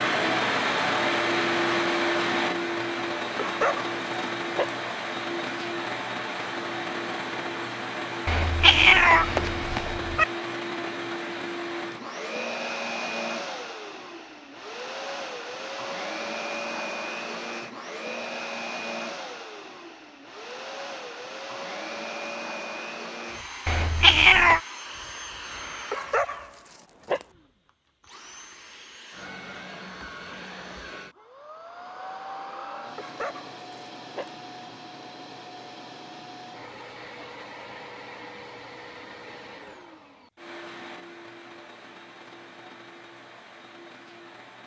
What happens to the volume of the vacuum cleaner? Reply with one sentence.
The loudness of the vacuum cleaner goes down.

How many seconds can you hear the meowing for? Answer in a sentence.
You can hear the meowing for 3 seconds altogether.